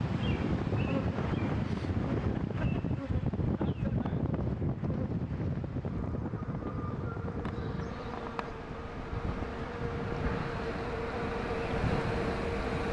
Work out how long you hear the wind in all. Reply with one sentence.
You can hear the wind for 13 seconds altogether.